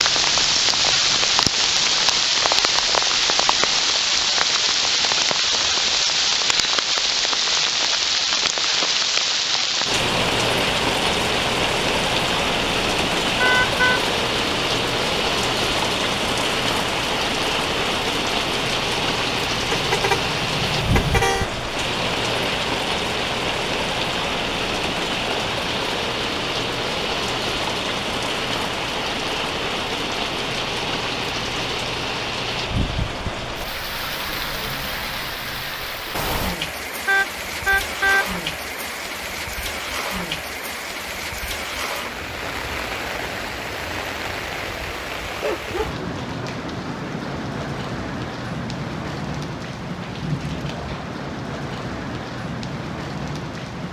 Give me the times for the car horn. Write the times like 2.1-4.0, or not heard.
13.4-14.0, 19.7-21.4, 37.0-38.2.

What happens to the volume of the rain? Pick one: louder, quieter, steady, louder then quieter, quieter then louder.
quieter.